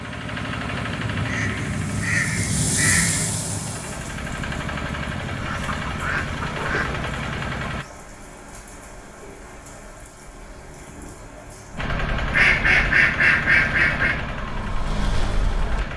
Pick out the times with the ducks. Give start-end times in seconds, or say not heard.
1.2-3.4, 5.3-7.1, 12.3-14.2.